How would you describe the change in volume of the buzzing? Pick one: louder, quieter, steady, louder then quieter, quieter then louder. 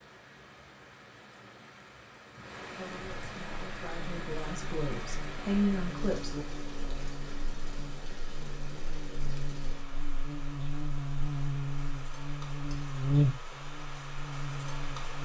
louder.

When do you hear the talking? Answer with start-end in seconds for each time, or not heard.
2.6-6.5.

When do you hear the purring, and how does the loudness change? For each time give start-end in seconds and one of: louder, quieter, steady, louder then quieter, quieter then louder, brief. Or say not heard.
not heard.